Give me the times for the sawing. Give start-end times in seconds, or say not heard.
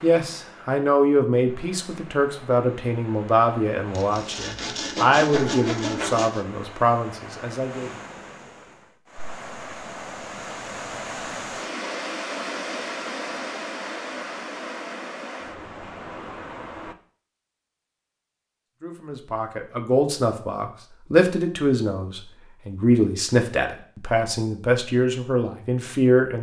4.0-6.5.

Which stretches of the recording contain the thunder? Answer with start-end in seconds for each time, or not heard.
not heard.